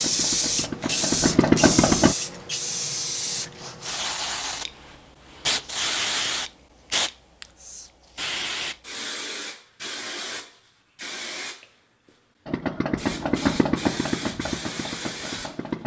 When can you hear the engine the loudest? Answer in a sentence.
The volume of the engine peaks at 2 seconds.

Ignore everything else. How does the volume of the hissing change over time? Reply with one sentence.
The volume of the hissing goes down.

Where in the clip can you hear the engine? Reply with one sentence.
The engine can be heard from 0.0 to 2.1 s and from 12.4 to 15.8 s.